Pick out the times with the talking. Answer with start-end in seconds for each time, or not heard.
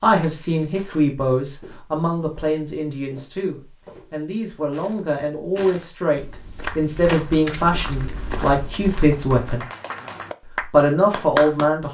0.0-9.7, 10.6-11.8.